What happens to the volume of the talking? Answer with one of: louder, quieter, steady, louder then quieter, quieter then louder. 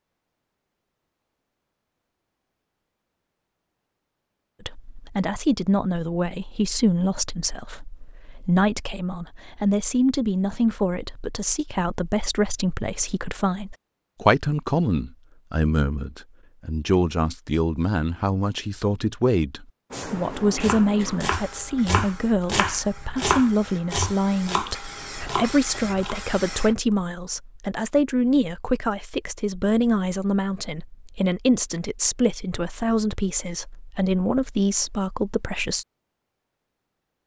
steady.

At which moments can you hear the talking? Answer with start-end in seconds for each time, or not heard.
4.6-35.9.